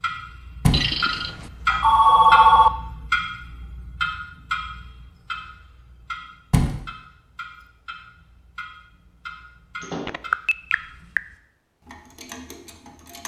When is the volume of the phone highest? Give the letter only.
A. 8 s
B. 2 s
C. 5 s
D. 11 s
B.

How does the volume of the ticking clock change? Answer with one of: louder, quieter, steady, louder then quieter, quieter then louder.
quieter.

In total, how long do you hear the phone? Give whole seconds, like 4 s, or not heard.
3 s.